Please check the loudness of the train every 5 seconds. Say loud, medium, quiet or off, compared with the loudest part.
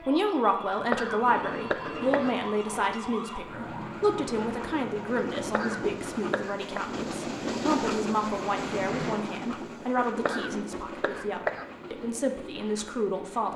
medium, loud, medium.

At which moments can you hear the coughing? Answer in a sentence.
You can hear the coughing from 0.7 to 2.4 s, from 5.3 to 6.8 s and from 10.1 to 11.8 s.